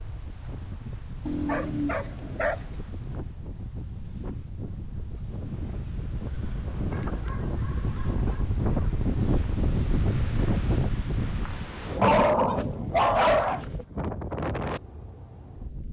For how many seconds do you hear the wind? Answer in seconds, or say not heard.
16 s.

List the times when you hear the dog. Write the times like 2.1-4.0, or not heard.
1.2-2.6, 6.9-8.4, 12.0-13.7.